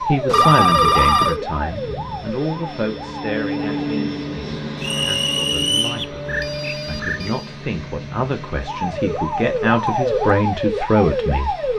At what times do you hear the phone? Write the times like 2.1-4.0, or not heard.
0.3-1.4, 6.0-7.5.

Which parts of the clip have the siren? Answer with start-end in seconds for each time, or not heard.
0.0-3.8, 8.6-11.7.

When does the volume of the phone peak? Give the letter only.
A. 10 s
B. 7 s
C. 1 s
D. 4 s
C.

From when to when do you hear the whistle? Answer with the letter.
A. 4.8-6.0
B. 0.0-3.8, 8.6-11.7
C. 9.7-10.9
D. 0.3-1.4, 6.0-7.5
A.